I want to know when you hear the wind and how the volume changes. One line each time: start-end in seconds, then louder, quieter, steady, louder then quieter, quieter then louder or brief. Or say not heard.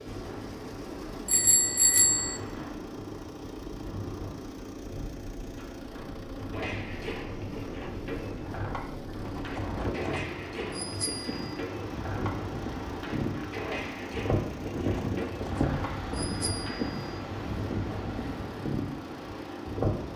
0.0-20.1 louder.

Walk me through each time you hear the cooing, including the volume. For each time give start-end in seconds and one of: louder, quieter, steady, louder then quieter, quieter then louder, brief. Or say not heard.
6.5-16.9 steady.